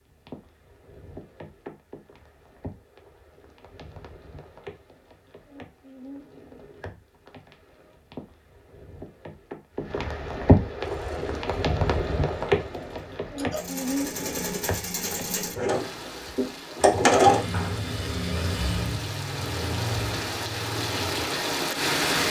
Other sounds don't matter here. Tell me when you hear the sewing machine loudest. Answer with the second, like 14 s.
17 s.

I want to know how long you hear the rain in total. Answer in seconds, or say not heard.
22 s.